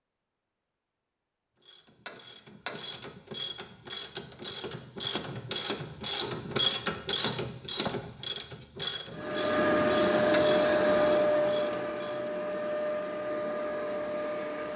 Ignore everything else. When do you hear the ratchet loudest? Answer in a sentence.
The loudest moment of the ratchet is at 7 seconds.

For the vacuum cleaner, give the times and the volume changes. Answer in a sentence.
The vacuum cleaner can be heard from 9.1 to 14.7 s, getting quieter.